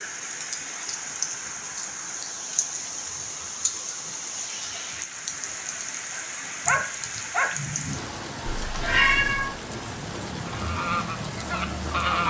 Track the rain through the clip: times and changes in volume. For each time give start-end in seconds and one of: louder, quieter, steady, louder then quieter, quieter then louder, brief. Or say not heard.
0.0-12.2 steady.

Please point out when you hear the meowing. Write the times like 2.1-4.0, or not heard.
8.4-9.6.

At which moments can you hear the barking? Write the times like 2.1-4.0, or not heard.
6.1-7.7.